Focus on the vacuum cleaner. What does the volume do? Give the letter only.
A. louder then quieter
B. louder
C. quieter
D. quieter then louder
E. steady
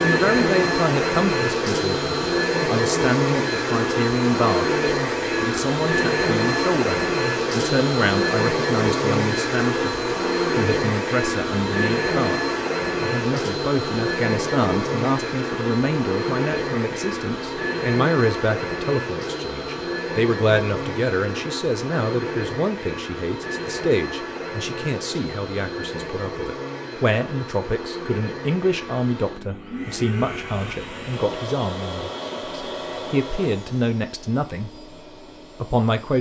C.